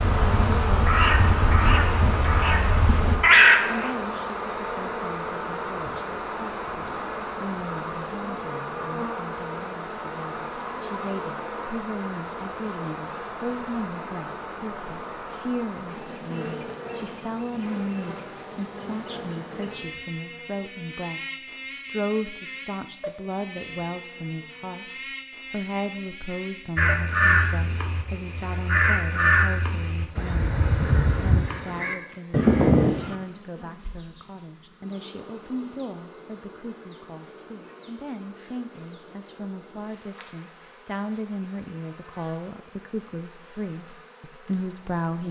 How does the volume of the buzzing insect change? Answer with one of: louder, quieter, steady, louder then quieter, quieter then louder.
quieter.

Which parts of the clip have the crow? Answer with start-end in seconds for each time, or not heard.
0.0-3.9, 26.8-33.1.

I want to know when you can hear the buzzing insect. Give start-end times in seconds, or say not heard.
0.0-45.2.